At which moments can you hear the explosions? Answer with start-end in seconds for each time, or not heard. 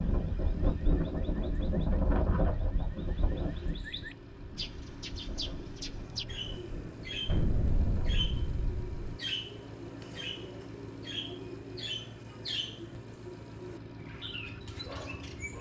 7.2-9.2.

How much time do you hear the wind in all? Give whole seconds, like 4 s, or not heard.
8 s.